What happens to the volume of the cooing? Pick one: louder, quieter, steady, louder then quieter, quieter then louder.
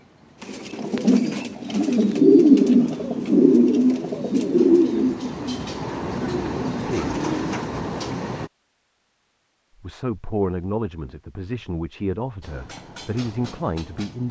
louder then quieter.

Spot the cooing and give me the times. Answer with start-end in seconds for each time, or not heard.
0.4-7.7.